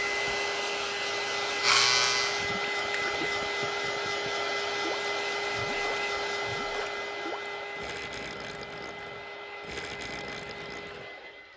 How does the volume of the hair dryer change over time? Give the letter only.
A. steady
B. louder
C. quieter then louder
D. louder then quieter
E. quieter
E.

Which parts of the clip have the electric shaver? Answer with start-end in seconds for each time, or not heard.
0.0-2.5.